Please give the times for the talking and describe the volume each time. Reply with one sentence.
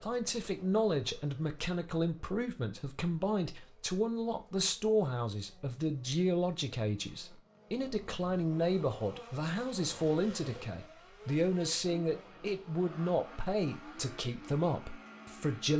The talking can be heard from 0.0 to 15.7 s, at a steady volume.